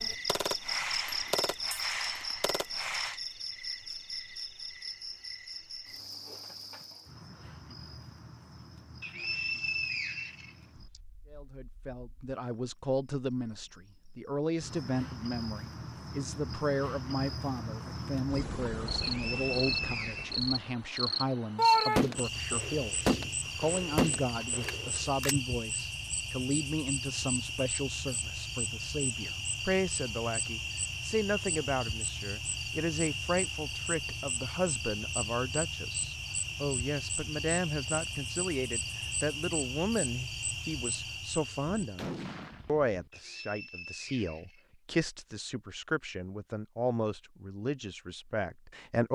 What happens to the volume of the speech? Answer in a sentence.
The loudness of the speech stays about the same.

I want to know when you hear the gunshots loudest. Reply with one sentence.
The volume of the gunshots peaks at 22 seconds.